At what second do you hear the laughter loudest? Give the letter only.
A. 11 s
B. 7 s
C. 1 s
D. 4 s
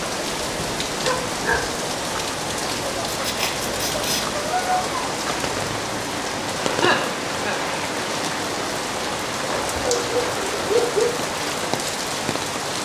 B.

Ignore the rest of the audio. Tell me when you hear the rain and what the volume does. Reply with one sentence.
You can hear the rain from 0.0 to 12.8 s, at a steady volume.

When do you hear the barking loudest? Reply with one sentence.
The volume of the barking peaks at 11 seconds.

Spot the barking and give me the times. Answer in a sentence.
The barking can be heard from 1.0 to 1.6 s, from 4.3 to 5.2 s and from 9.4 to 11.1 s.